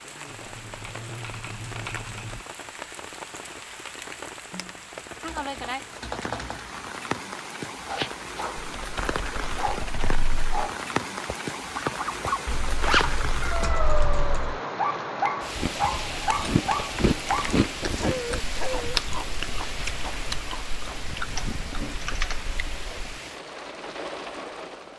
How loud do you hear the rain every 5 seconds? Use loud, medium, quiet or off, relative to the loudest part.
medium, loud, loud, loud, medium.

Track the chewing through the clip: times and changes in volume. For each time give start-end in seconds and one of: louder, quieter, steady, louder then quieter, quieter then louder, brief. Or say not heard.
15.6-23.1 quieter.